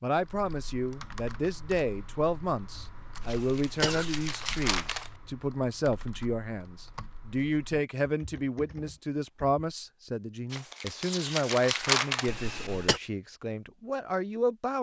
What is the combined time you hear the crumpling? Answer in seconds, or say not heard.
4 s.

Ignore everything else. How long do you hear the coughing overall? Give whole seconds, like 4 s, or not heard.
2 s.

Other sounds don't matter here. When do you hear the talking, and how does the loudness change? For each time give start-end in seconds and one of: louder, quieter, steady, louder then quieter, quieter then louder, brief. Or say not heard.
0.0-14.7 steady.